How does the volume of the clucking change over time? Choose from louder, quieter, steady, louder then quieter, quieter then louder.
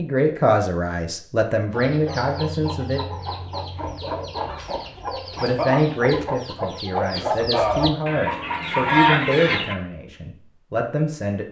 louder.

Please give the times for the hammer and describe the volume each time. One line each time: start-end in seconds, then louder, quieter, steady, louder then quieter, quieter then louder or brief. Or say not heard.
not heard.